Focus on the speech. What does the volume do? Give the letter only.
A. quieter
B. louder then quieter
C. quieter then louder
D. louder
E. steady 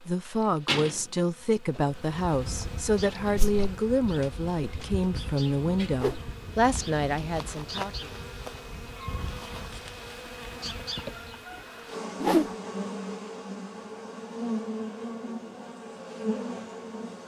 E.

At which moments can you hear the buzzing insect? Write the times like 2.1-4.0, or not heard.
0.0-17.2.